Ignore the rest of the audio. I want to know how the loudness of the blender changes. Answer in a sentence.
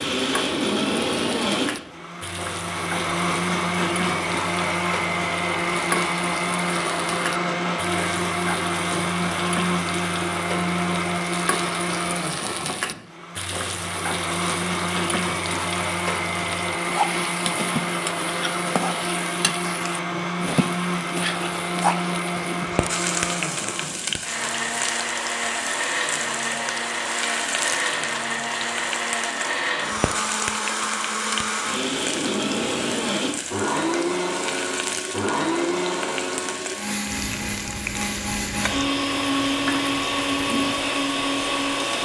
The volume of the blender stays about the same.